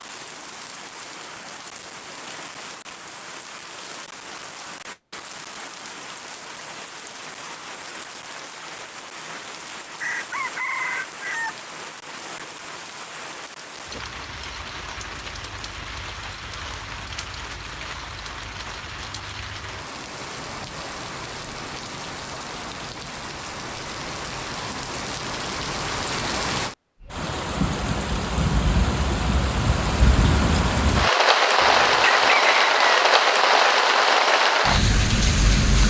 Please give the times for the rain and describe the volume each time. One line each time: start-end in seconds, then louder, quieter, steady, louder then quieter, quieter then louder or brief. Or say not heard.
0.0-35.8 louder.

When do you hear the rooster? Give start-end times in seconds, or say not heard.
10.0-11.6, 31.6-33.1.